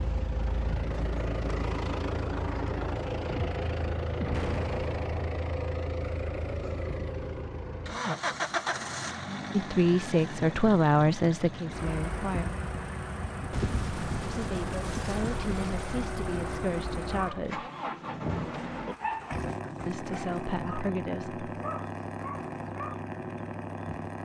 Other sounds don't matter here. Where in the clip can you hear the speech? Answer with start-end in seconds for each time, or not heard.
9.5-12.4, 14.2-17.7, 19.9-21.4.